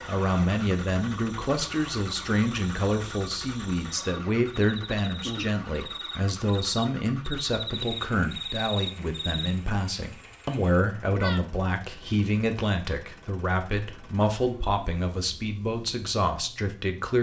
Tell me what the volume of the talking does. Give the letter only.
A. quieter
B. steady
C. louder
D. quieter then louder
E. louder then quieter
B.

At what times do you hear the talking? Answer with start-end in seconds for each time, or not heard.
0.1-17.1.